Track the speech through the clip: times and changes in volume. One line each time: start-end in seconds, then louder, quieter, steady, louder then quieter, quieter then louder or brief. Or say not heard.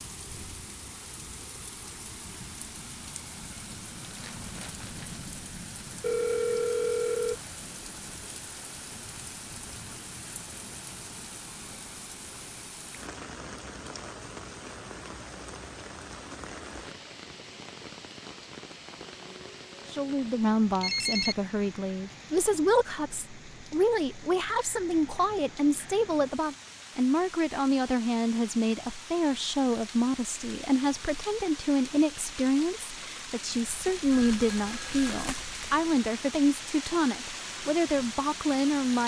19.9-39.0 steady.